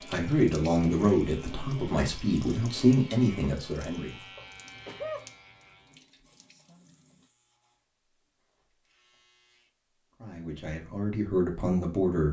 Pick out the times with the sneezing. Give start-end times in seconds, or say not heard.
4.3-5.2.